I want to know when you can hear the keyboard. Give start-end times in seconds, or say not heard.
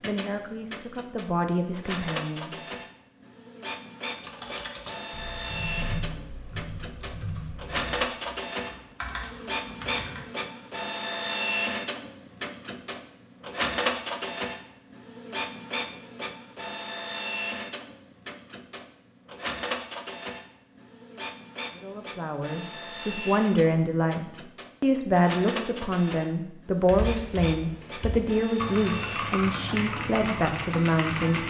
4.2-10.2, 26.9-31.4.